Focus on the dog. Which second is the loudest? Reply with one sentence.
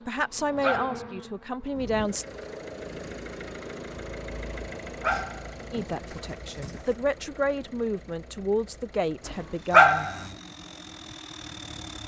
The loudest moment of the dog is at 10 seconds.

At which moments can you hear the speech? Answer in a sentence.
You can hear the speech from 0.1 to 2.2 s and from 5.7 to 10.1 s.